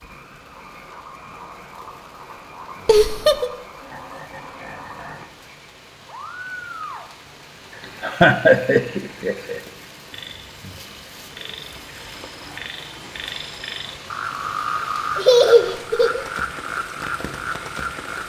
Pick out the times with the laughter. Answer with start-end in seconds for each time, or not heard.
2.9-3.5, 8.0-9.6, 15.2-16.2.